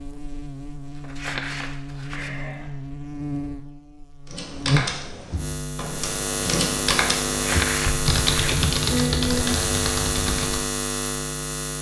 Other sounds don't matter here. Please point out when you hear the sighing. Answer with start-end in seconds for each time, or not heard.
2.1-2.7, 8.9-9.7.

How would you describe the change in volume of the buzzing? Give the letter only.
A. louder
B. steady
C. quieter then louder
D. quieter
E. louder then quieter
A.